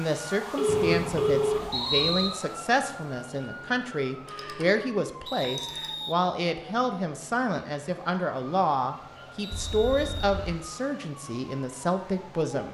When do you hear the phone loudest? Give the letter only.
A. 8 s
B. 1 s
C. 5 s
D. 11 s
B.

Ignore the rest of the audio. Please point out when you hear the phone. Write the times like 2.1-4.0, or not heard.
0.6-1.7, 4.2-4.7, 5.4-5.9, 9.5-10.6.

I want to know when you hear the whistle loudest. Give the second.
2 s.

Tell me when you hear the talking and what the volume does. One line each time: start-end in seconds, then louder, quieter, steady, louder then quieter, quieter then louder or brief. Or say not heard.
0.0-12.6 steady.